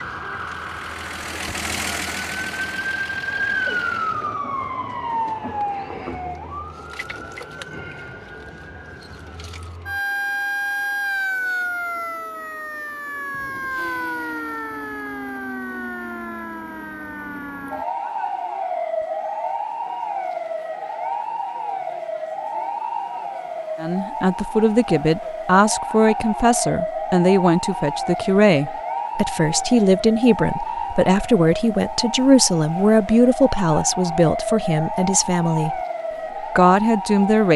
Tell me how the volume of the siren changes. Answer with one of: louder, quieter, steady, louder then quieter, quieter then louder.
steady.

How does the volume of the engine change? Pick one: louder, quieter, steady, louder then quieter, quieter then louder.
louder then quieter.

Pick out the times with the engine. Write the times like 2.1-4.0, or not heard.
0.0-4.4.